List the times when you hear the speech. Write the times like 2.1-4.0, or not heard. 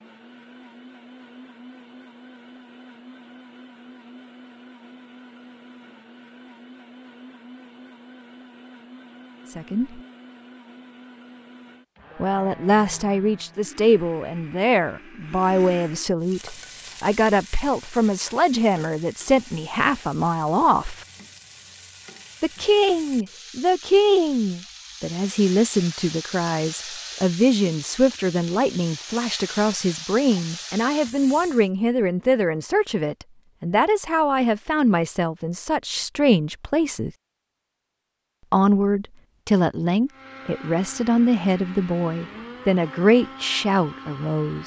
9.5-10.0, 12.2-21.1, 22.4-37.1, 38.5-44.6.